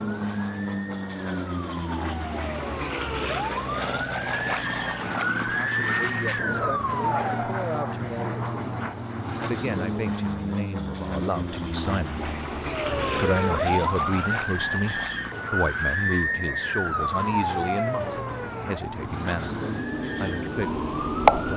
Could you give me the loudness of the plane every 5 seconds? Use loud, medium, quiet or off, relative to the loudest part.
loud, loud, loud, medium, loud.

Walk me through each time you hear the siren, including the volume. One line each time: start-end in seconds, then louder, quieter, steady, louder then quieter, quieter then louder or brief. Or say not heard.
0.0-7.5 louder
12.7-21.5 quieter.